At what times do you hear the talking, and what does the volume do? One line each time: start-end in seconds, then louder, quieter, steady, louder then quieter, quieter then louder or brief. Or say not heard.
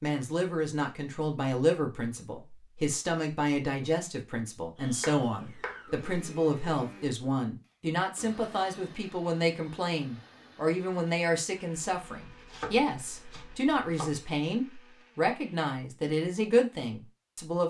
0.0-17.6 steady.